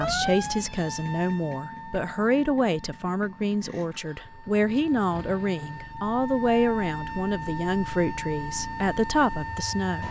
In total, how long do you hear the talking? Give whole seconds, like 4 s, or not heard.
10 s.